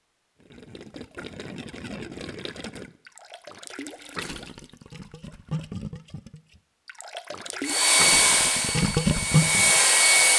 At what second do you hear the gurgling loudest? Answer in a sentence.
The volume of the gurgling peaks at 9 seconds.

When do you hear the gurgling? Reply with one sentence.
You can hear the gurgling from 0.4 to 9.8 s.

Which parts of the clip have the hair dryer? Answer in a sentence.
You can hear the hair dryer from 7.6 to 10.3 s.